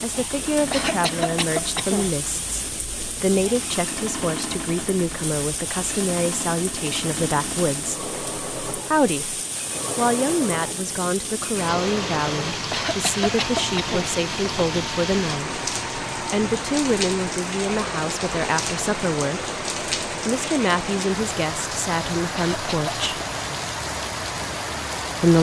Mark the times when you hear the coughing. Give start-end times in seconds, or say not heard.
0.7-2.1, 12.7-14.2, 22.4-23.1.